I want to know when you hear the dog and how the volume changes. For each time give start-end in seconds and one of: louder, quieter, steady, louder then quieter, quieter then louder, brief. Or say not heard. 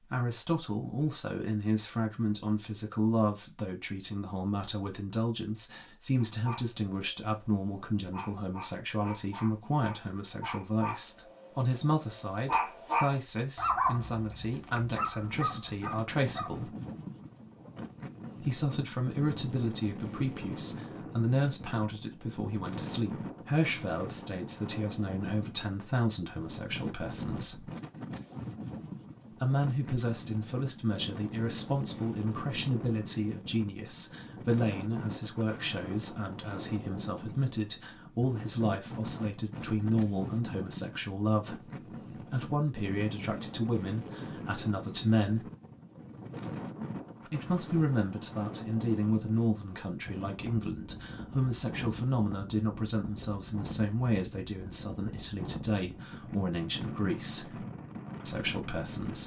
6.2-16.6 louder then quieter.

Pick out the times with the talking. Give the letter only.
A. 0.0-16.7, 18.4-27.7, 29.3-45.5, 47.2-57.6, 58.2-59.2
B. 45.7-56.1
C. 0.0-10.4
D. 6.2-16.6
A.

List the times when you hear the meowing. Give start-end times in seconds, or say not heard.
not heard.